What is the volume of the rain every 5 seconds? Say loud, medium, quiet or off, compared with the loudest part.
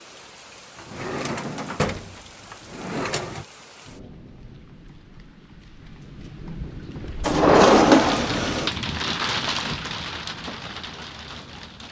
quiet, loud, medium.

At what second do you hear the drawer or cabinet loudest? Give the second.
8 s.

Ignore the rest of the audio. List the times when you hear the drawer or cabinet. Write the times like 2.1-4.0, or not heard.
0.8-3.5, 7.2-8.7.